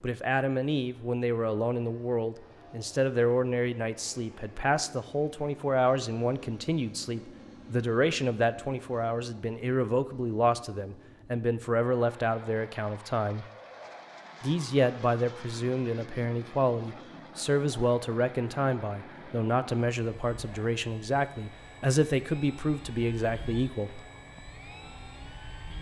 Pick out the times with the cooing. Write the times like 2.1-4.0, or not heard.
not heard.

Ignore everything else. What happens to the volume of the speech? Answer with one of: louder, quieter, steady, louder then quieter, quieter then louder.
steady.